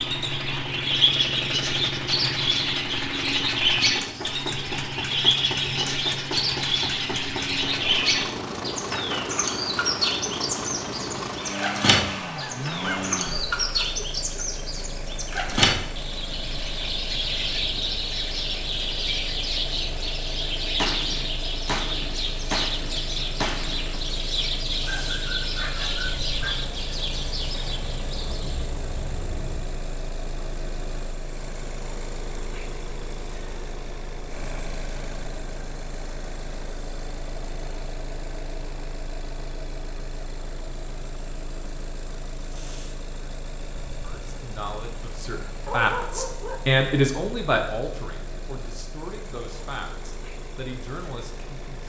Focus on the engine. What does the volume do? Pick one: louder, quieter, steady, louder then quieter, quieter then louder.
quieter.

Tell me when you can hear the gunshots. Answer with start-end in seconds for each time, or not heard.
20.8-23.9.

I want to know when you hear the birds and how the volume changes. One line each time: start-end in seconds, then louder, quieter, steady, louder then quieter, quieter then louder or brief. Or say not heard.
0.0-29.7 quieter.